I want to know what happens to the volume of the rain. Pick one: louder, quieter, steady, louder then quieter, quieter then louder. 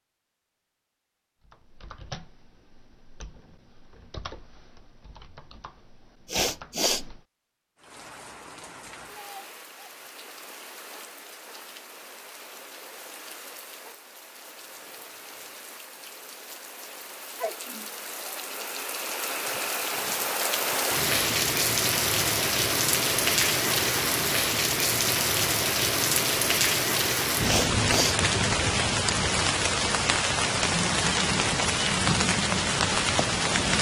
louder.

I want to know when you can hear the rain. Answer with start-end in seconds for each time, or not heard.
7.8-33.7.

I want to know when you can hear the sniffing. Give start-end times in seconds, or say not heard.
6.2-7.0, 27.4-28.2.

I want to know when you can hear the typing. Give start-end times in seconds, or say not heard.
1.4-7.2.